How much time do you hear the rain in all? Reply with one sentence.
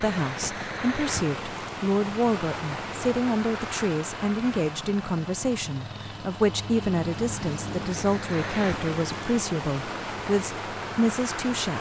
You can hear the rain for 12 seconds altogether.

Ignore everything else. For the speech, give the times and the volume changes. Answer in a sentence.
The speech can be heard from 0.0 to 11.7 s, at a steady volume.